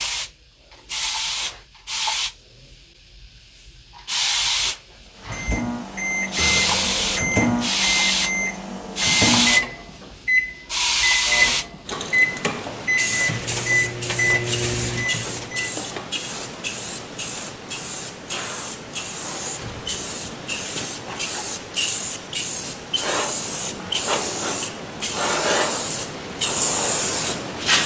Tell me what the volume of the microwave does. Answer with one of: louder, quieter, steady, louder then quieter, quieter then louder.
steady.